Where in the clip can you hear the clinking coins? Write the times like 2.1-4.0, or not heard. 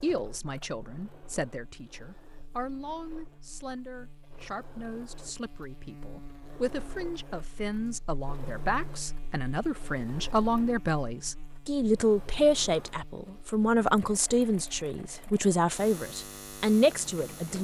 not heard.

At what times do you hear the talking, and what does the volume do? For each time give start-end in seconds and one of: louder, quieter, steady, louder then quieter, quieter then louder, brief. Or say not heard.
0.0-17.5 louder.